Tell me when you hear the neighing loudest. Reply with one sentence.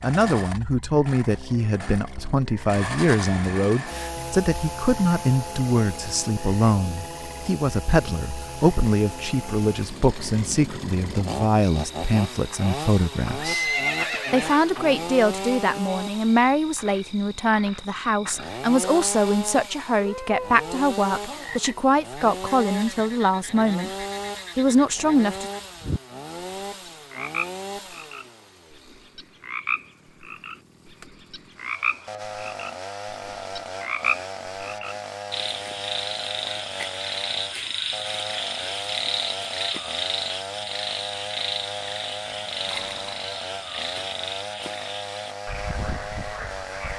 The loudest moment of the neighing is at 14 seconds.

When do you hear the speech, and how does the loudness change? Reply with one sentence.
You can hear the speech from 0.0 to 23.9 s, at a steady volume; and briefly from 24.6 to 25.5 s.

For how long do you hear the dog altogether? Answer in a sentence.
The dog can't be heard in this clip.